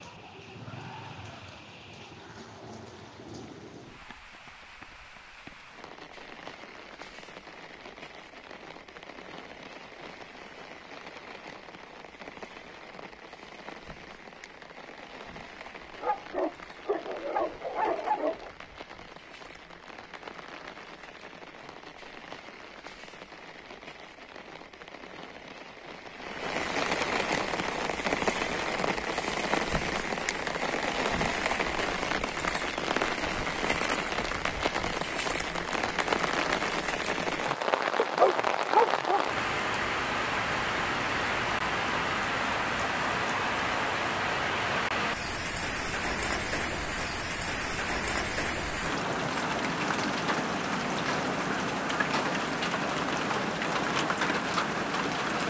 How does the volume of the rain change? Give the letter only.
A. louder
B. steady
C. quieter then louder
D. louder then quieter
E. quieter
A.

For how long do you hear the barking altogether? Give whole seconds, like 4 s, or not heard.
4 s.